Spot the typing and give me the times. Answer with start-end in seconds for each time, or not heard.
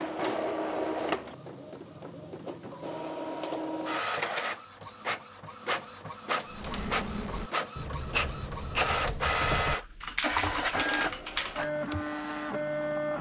6.5-12.1.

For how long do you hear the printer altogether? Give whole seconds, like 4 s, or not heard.
13 s.